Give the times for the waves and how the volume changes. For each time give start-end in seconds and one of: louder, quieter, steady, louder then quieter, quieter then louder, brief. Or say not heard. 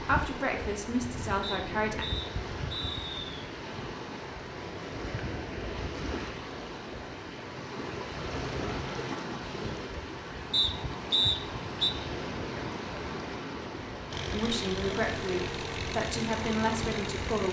0.0-17.4 steady.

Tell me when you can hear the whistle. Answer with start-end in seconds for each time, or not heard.
1.4-3.4, 10.5-11.9.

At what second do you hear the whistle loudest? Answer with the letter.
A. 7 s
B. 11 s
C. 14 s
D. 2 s
B.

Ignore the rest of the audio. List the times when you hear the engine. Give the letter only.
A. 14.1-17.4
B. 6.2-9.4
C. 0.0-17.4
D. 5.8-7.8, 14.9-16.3
A.